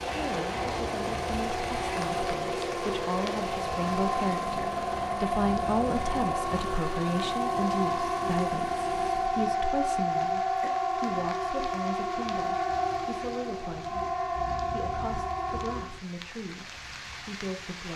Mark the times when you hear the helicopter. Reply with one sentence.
You can hear the helicopter from 0.0 to 9.5 s.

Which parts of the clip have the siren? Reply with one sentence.
The siren can be heard from 0.2 to 16.0 s.